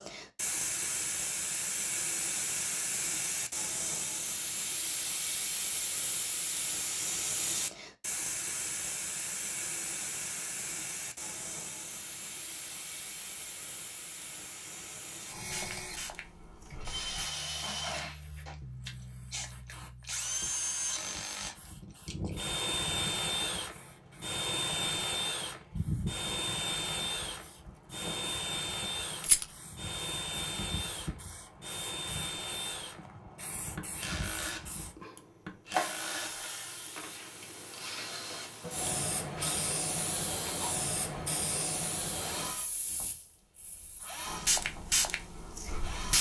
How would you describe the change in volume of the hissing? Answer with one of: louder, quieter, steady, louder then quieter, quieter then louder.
quieter then louder.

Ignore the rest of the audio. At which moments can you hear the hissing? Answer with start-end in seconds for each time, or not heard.
0.0-46.1.